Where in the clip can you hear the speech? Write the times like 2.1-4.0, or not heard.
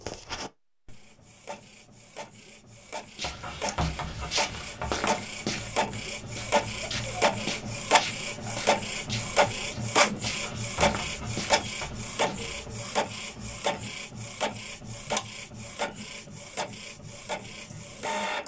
not heard.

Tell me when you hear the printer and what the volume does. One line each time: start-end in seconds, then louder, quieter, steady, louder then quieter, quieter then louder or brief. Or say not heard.
0.0-18.4 louder then quieter.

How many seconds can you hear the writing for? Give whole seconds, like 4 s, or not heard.
4 s.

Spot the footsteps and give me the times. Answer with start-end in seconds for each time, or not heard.
3.1-12.5.